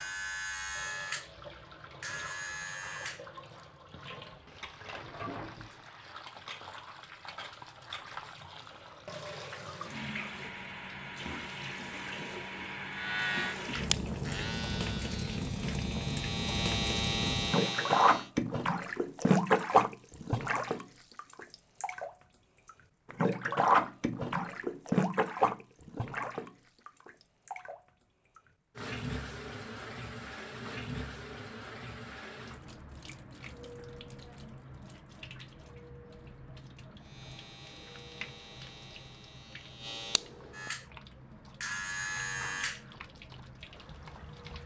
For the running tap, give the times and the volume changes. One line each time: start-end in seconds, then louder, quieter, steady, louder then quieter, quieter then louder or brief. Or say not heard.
0.0-44.6 louder then quieter.